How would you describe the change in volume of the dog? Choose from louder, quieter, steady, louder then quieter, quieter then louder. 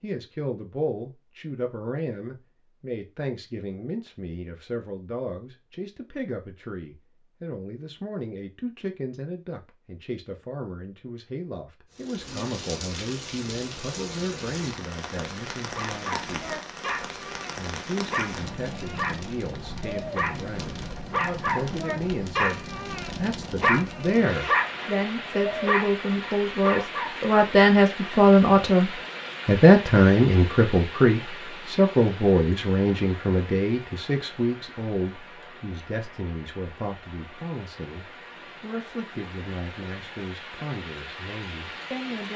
louder.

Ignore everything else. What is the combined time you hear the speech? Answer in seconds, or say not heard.
41 s.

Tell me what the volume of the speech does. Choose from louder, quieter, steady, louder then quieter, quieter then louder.
louder then quieter.